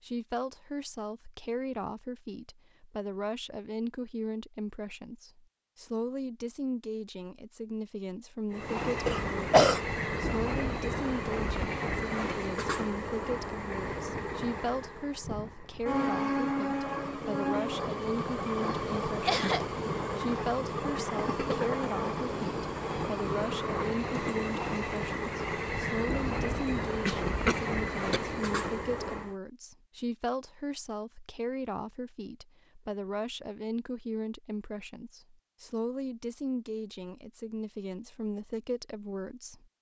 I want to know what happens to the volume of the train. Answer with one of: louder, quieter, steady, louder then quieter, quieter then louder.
steady.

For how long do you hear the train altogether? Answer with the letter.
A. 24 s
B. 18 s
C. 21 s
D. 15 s
C.